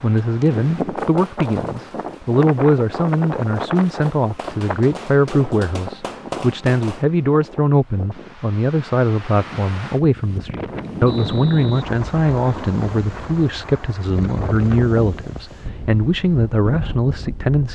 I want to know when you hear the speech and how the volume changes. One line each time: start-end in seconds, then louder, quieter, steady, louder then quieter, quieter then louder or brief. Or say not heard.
0.0-17.7 steady.